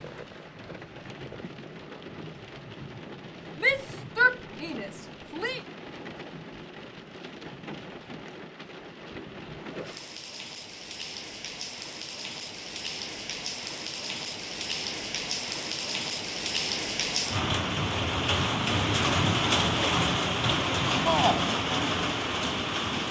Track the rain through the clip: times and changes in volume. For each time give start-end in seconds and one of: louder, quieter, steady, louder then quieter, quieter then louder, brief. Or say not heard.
0.0-23.0 louder.